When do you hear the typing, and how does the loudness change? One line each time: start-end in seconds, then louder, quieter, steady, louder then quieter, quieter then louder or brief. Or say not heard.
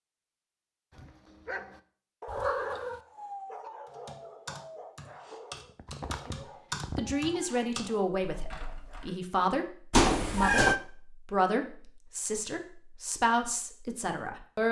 3.9-9.2 louder then quieter.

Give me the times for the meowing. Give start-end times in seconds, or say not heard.
2.2-3.0, 5.5-7.5, 9.9-10.8.